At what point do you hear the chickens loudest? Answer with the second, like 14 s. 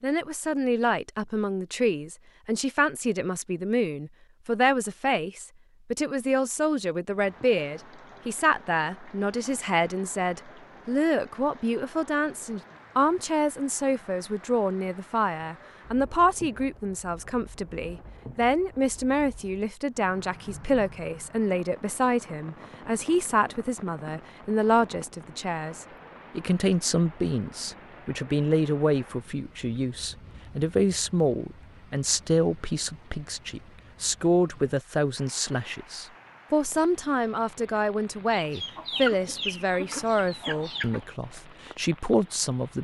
39 s.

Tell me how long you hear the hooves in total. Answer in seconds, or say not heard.
not heard.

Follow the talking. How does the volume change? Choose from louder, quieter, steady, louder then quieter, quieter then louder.
steady.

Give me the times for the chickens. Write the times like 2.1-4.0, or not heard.
38.3-41.0.